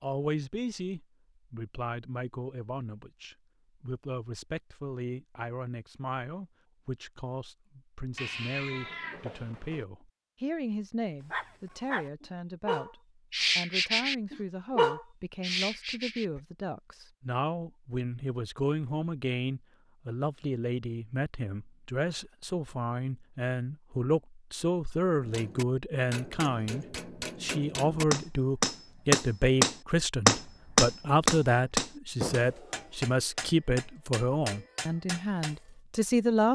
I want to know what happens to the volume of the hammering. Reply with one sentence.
The loudness of the hammering goes up, then down.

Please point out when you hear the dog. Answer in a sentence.
You can hear the dog from 11.3 to 16.4 s.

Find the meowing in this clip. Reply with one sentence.
You can hear the meowing from 8.2 to 9.8 s.